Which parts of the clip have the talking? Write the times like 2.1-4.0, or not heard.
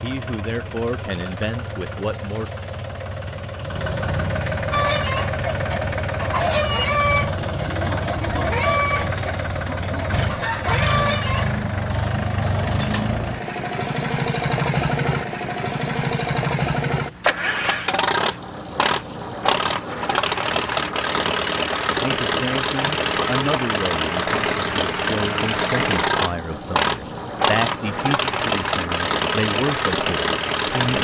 0.0-2.5, 21.9-30.9.